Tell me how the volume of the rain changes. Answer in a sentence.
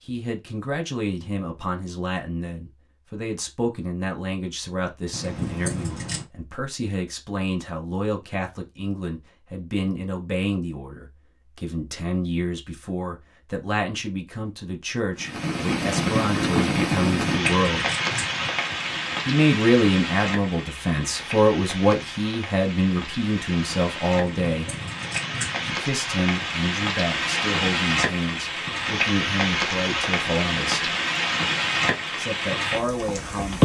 The volume of the rain goes down, then up.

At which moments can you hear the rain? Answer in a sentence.
You can hear the rain from 15.2 to 33.6 s.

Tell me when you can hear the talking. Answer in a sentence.
You can hear the talking from 0.0 to 17.9 s, from 19.2 to 24.7 s, from 25.6 to 30.9 s and from 32.1 to 33.6 s.